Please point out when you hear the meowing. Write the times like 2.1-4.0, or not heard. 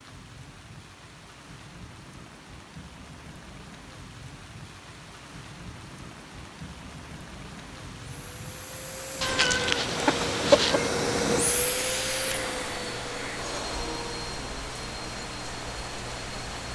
9.2-10.9.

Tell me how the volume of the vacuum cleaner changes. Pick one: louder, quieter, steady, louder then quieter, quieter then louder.
louder then quieter.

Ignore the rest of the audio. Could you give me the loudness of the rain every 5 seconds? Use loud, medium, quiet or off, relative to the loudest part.
medium, medium, loud, loud.